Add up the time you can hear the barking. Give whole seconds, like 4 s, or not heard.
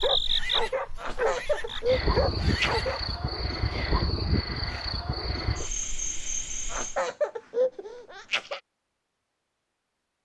3 s.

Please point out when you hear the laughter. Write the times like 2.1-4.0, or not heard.
0.9-2.8, 6.7-8.6.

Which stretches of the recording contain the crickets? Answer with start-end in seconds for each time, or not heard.
0.0-7.0.